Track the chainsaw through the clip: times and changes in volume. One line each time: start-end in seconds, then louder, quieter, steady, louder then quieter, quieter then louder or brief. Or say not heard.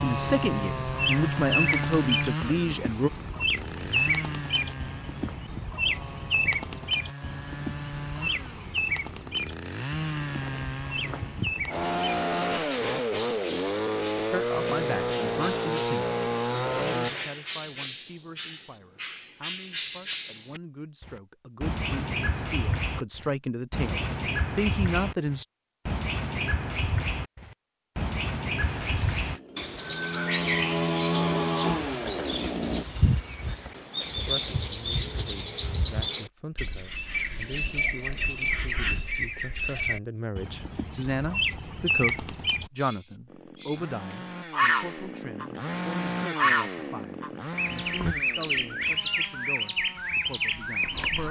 0.0-17.1 quieter then louder
28.6-32.9 louder then quieter
43.2-51.2 louder then quieter.